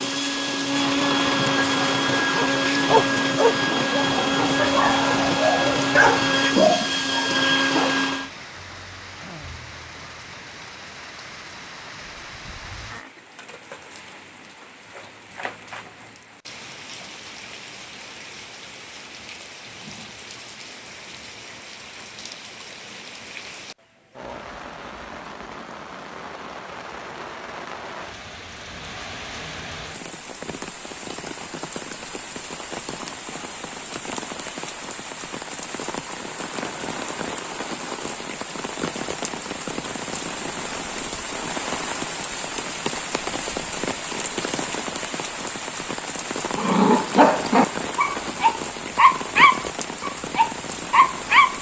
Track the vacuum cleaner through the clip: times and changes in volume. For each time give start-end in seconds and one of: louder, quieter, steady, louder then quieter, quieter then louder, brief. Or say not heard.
0.0-8.3 steady.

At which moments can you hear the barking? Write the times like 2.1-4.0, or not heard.
2.4-8.0, 46.5-51.5.